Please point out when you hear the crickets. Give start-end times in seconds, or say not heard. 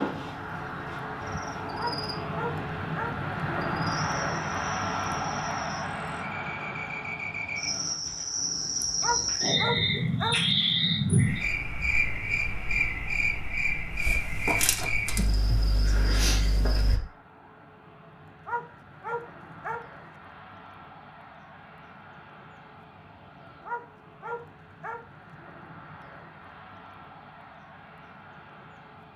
0.0-17.0.